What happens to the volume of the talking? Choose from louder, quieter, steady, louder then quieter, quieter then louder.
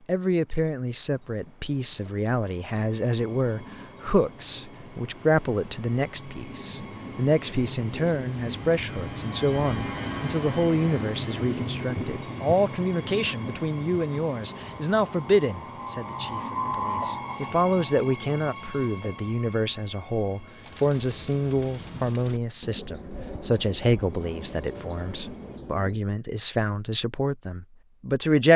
steady.